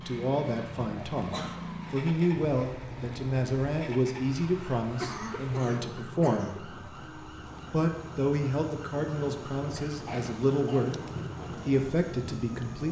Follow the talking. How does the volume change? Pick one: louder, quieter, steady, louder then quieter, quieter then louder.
steady.